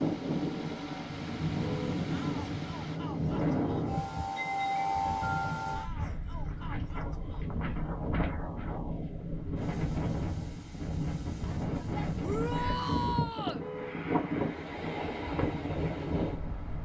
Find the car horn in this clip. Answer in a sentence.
You can hear the car horn from 1.5 to 2.0 s and from 13.5 to 14.0 s.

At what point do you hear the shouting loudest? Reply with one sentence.
The loudest moment of the shouting is at 13 seconds.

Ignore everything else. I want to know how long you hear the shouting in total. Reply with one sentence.
The shouting can be heard for 5 seconds in total.